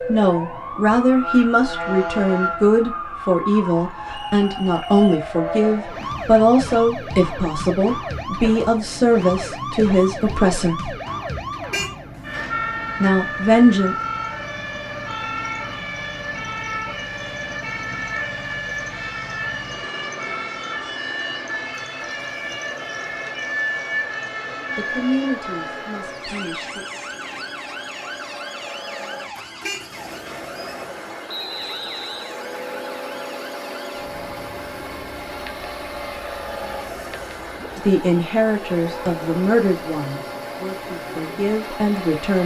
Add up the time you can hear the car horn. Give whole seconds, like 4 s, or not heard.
2 s.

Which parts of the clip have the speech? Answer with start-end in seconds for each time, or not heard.
0.1-10.9, 13.0-13.9, 24.8-26.9, 37.8-42.4.